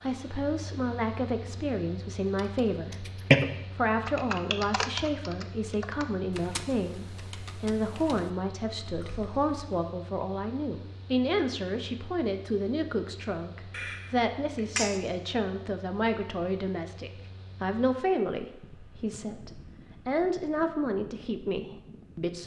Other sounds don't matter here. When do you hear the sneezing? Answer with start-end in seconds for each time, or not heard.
13.7-15.0.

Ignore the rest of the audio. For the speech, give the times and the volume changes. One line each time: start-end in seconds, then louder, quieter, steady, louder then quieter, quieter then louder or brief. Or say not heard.
0.0-22.4 steady.